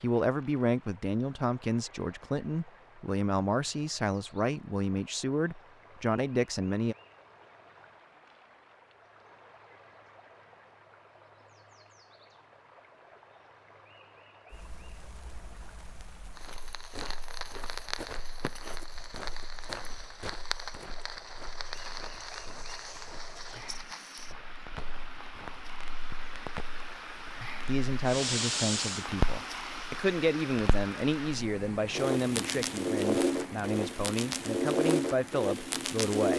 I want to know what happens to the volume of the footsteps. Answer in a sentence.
The loudness of the footsteps goes down.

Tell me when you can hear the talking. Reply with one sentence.
The talking can be heard from 0.0 to 7.0 s and from 27.6 to 36.3 s.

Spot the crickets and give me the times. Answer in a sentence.
The crickets can't be heard in this clip.